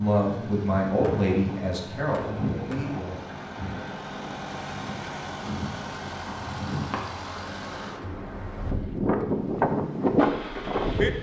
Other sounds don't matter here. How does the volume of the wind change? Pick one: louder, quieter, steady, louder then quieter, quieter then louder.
louder.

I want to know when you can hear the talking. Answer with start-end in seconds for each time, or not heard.
0.0-3.2.